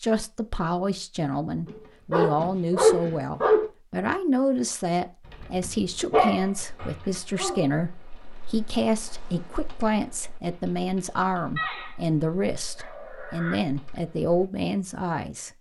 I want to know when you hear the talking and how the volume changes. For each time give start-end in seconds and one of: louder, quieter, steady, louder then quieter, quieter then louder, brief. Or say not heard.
0.0-15.5 steady.